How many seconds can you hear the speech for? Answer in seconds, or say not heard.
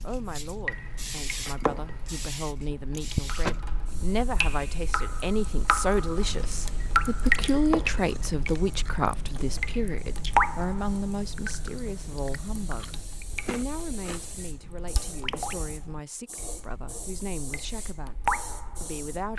19 s.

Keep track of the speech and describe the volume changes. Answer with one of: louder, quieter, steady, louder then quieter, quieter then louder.
louder then quieter.